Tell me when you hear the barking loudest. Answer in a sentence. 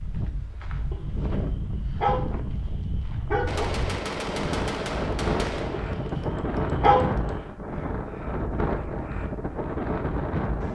The volume of the barking peaks at 7 seconds.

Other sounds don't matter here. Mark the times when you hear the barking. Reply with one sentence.
You can hear the barking from 0.9 to 3.7 s and from 5.8 to 7.2 s.